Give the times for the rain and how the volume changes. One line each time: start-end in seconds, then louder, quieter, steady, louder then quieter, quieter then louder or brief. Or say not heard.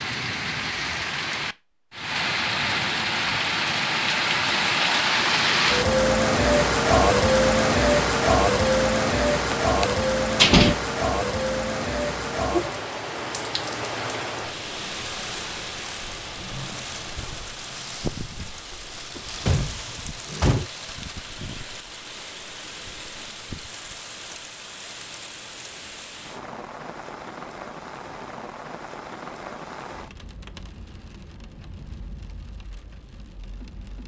0.0-34.0 quieter.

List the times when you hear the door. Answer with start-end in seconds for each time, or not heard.
9.5-10.8, 19.1-20.7.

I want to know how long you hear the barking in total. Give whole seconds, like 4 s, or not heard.
not heard.